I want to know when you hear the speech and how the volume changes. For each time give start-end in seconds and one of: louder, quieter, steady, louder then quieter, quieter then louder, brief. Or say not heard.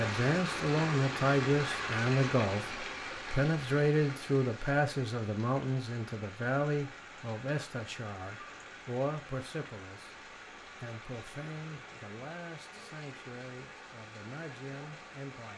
0.0-15.5 quieter.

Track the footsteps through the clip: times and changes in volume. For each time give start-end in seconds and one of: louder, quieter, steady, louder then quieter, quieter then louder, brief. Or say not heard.
not heard.